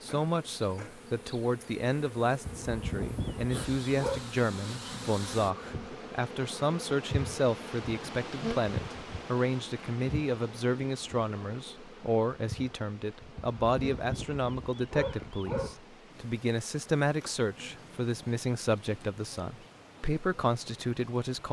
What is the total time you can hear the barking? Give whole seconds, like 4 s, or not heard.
4 s.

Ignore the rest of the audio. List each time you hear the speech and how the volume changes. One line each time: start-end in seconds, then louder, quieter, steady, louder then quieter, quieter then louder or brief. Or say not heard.
0.0-21.4 steady.